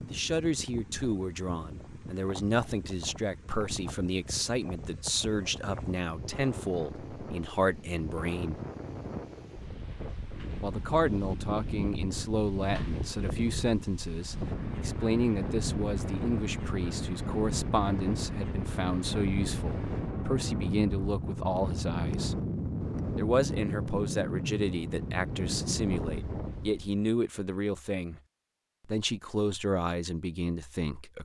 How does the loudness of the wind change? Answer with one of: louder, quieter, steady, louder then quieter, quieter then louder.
louder.